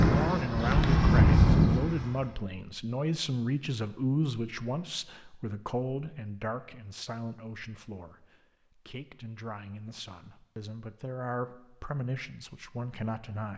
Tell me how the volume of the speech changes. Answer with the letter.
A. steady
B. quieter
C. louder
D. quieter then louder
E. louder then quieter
D.